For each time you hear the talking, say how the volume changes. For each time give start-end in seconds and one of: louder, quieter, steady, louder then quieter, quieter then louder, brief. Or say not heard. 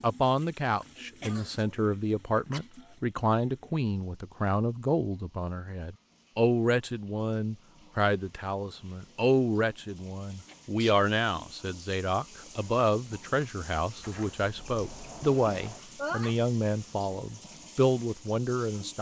0.0-18.9 steady.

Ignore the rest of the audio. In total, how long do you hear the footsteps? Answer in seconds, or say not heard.
not heard.